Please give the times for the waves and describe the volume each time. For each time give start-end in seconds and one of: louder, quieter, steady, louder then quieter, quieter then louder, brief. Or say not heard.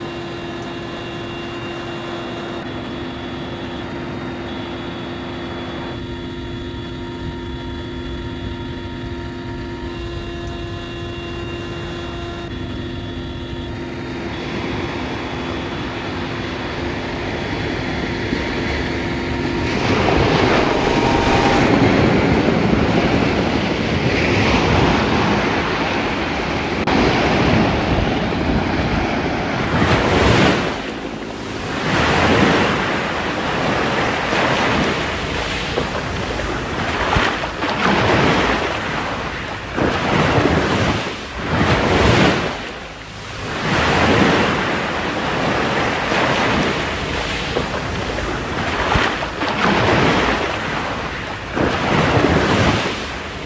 0.0-53.4 louder.